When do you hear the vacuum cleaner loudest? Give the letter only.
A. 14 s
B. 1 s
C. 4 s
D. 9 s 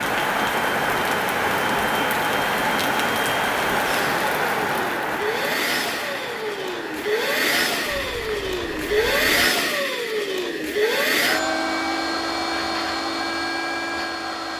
D.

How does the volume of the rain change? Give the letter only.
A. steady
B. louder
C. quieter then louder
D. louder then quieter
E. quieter
E.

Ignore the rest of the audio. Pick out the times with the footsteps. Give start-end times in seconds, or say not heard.
not heard.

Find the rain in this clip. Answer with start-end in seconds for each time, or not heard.
0.0-9.2.